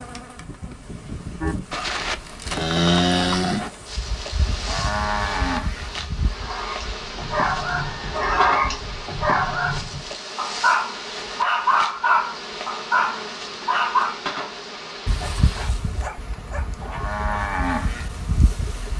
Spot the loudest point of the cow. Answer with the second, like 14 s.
3 s.